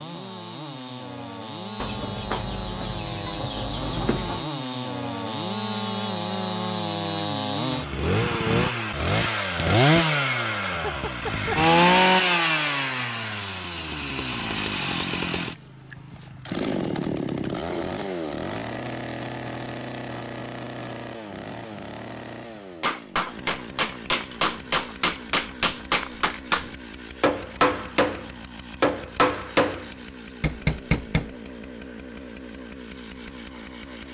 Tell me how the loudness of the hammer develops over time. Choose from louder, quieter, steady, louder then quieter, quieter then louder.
steady.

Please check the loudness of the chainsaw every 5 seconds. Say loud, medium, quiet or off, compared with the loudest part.
medium, loud, loud, medium, quiet, quiet, quiet.